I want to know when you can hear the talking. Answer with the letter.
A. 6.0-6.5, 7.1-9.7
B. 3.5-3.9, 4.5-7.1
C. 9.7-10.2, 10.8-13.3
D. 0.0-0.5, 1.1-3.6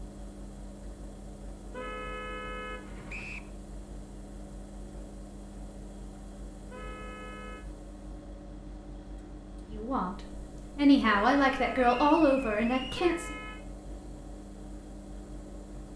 C.